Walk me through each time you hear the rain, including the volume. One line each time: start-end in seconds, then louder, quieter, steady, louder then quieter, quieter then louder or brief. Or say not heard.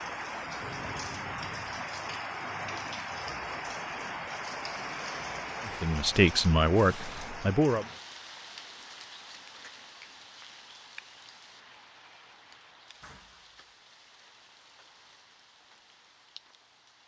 0.0-17.0 quieter.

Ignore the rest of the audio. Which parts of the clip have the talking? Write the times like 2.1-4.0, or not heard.
5.7-7.8.